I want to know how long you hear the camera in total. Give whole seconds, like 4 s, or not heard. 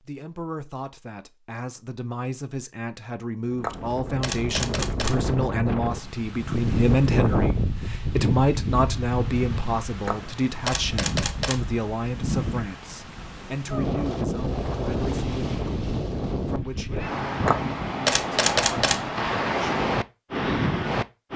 5 s.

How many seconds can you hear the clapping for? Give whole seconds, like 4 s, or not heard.
not heard.